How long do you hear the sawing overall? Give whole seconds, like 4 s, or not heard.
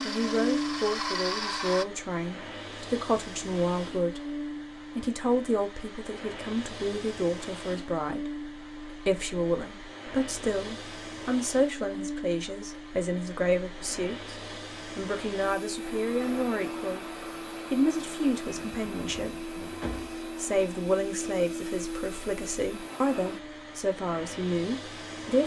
2 s.